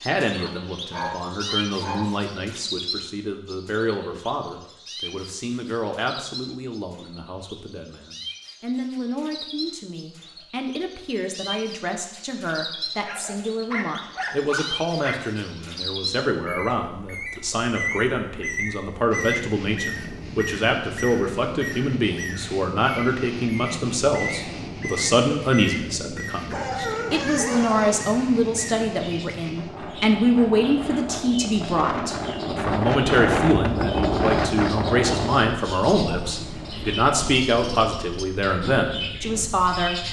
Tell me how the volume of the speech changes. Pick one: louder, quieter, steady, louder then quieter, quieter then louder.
louder.